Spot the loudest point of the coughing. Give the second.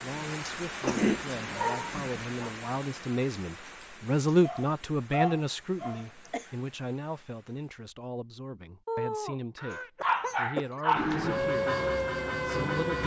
1 s.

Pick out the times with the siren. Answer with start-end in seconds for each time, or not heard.
10.9-13.0.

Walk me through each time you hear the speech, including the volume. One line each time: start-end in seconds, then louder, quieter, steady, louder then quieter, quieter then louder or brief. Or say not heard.
0.0-13.0 louder then quieter.